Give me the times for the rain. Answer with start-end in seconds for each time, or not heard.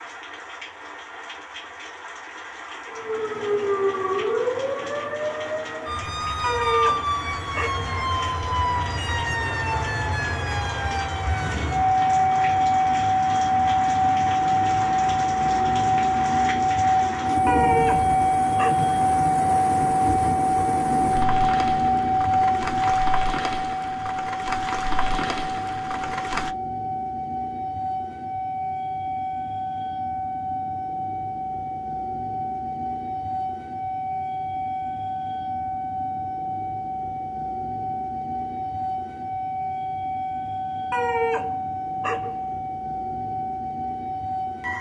0.0-26.6.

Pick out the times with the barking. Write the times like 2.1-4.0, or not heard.
6.4-7.8, 17.4-18.9, 40.9-42.5.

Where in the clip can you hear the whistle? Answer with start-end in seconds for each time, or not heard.
not heard.